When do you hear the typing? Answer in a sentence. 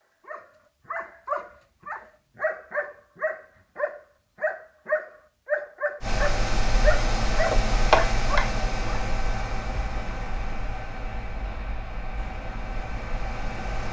The typing can't be heard in this clip.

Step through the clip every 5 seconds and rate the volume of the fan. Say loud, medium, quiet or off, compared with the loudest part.
off, loud, medium.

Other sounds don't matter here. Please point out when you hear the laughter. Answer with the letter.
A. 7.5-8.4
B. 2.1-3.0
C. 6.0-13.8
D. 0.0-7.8
A.